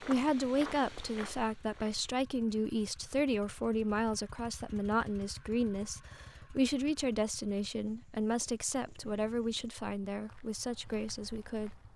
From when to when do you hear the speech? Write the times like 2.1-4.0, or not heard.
0.0-11.7.